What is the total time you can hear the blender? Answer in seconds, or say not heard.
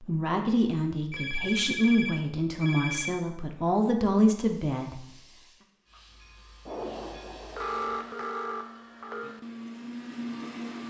3 s.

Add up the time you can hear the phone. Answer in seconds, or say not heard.
5 s.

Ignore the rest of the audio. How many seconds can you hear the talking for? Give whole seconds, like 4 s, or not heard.
5 s.